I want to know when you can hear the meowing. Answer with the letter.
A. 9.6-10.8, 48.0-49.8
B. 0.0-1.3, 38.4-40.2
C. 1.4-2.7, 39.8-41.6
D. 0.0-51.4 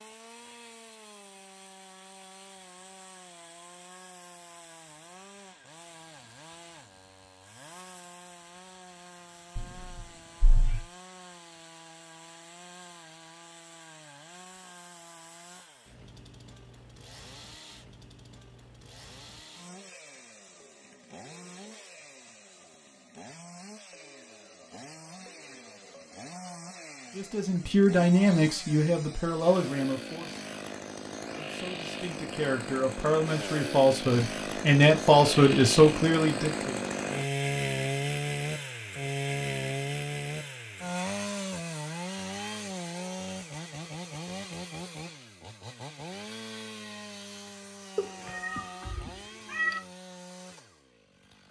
A.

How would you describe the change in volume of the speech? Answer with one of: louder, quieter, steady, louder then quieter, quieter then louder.
quieter then louder.